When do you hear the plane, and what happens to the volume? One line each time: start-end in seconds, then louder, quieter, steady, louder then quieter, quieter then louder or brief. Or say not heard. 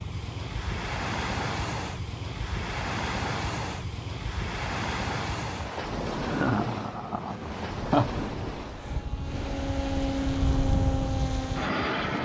7.0-12.2 louder.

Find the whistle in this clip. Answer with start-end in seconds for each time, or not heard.
not heard.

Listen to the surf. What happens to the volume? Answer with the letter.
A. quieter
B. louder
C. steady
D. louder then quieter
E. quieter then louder
A.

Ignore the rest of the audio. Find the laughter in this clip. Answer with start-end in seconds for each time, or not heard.
6.2-8.1.